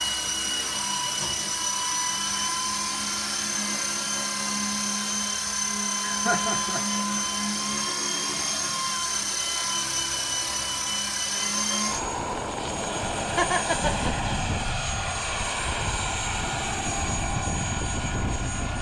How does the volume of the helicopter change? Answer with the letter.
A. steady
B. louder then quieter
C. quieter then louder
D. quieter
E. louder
A.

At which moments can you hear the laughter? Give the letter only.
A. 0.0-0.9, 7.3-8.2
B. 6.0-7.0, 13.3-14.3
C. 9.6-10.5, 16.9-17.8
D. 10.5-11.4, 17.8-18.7
B.